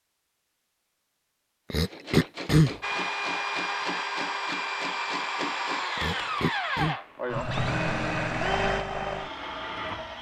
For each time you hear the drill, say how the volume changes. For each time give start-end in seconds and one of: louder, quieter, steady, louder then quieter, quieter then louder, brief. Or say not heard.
2.8-10.1 steady.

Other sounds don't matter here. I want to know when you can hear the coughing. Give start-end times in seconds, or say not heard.
1.7-2.8, 6.0-7.0.